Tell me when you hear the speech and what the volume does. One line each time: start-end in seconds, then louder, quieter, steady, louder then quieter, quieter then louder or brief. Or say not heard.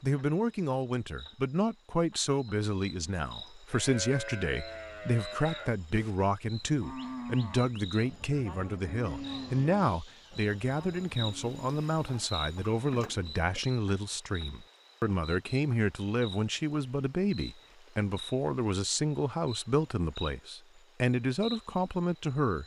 0.0-22.6 steady.